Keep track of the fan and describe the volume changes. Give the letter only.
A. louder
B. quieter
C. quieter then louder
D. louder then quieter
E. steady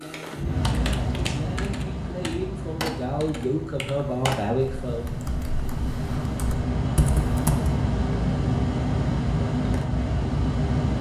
C.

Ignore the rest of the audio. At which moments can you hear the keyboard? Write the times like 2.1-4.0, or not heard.
0.0-7.7.